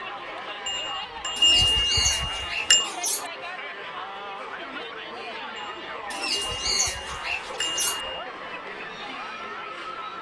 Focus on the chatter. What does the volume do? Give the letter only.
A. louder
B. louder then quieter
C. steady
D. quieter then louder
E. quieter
C.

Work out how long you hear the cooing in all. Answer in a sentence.
You can hear the cooing for 4 seconds altogether.